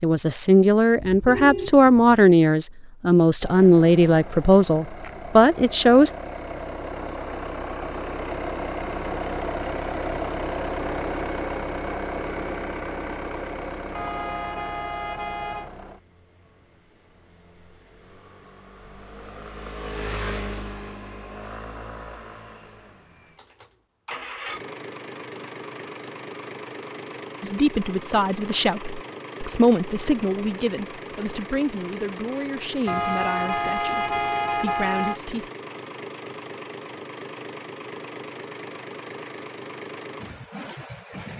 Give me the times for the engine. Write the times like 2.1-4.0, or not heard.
3.4-41.3.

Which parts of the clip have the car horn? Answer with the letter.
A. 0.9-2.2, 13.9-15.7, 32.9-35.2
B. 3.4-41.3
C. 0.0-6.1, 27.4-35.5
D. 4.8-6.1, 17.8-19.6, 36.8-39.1
A.